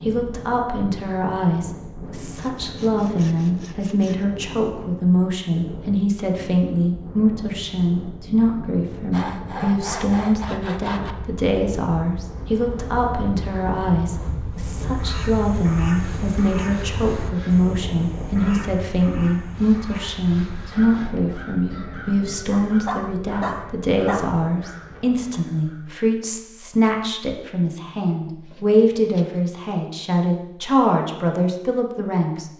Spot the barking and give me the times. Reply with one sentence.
You can hear the barking from 22.5 to 24.4 s.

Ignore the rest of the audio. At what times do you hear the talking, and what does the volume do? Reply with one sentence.
The talking can be heard from 0.1 to 32.5 s, at a steady volume.